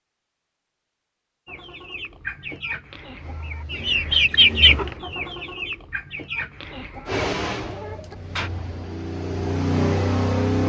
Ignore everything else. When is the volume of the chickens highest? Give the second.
5 s.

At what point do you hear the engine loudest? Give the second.
10 s.